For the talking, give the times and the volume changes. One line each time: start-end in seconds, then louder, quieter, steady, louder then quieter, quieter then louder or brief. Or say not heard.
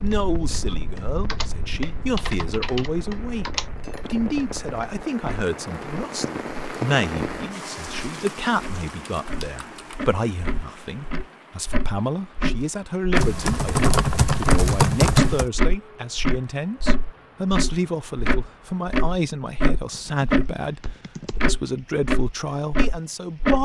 0.0-23.5 steady.